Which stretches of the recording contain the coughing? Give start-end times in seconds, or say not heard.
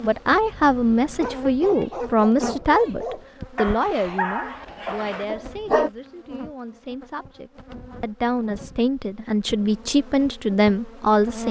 not heard.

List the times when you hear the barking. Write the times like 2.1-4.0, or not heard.
0.3-5.9.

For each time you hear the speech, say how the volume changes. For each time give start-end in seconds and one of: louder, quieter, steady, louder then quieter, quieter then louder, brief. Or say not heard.
0.0-11.4 quieter then louder.